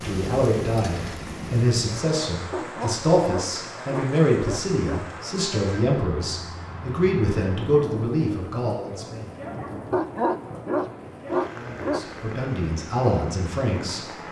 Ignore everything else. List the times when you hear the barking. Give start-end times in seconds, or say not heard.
2.5-5.1, 9.9-12.1.